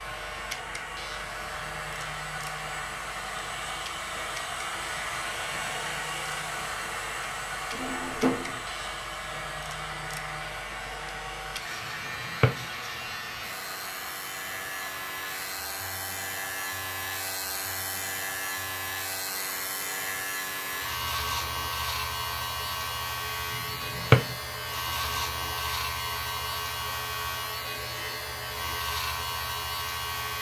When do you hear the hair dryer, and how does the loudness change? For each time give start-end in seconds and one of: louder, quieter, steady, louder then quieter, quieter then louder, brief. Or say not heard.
0.0-30.3 quieter.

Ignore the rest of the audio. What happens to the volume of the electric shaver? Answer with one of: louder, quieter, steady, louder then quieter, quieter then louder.
louder.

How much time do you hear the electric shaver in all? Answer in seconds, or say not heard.
30 s.